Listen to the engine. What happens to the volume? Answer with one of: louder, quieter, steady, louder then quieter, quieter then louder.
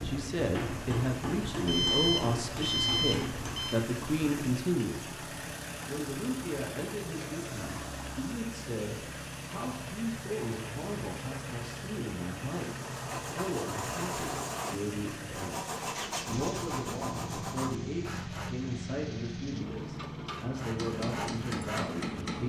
steady.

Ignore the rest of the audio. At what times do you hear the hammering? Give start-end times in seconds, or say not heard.
0.0-3.6, 20.8-22.4.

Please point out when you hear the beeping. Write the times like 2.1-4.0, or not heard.
1.6-3.8.